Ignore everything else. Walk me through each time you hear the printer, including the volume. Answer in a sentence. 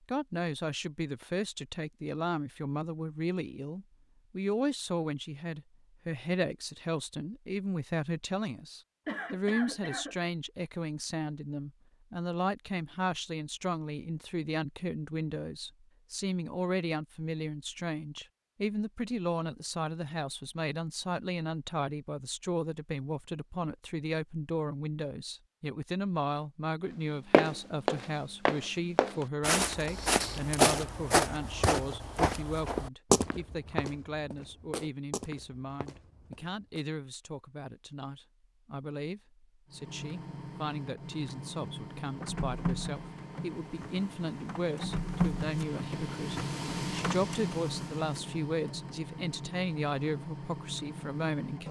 The printer can be heard from 39.7 to 51.6 s, getting louder then quieter.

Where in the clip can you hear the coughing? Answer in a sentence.
You can hear the coughing from 9.1 to 10.2 s.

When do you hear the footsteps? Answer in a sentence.
You can hear the footsteps from 27.3 to 36.8 s.